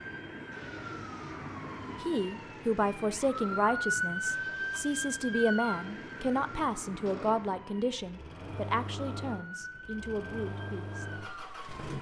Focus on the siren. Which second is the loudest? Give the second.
4 s.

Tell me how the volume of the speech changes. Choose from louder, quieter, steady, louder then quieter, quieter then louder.
quieter.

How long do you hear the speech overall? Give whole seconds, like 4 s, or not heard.
9 s.